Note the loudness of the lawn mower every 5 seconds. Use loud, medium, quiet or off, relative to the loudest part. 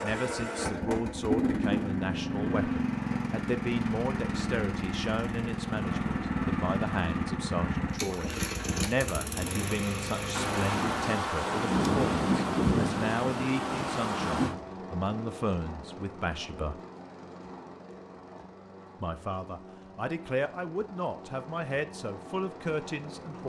loud, loud, medium, quiet, quiet.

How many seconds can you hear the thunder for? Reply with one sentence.
You can hear the thunder for 4 seconds altogether.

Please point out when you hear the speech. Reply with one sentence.
The speech can be heard from 0.0 to 16.8 s and from 19.0 to 23.4 s.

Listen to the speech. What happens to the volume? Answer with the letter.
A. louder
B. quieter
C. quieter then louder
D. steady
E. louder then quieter
D.